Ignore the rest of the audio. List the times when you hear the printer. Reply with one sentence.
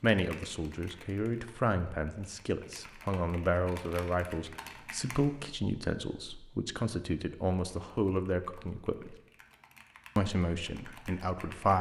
The printer can't be heard in this clip.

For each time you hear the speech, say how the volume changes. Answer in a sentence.
The speech can be heard from 0.0 to 9.2 s, at a steady volume; and briefly from 10.2 to 11.7 s.